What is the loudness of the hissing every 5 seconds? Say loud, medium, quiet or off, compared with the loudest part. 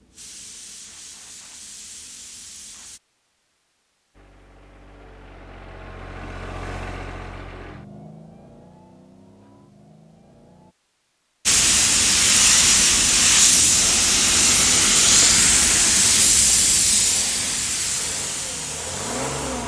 quiet, off, loud, loud.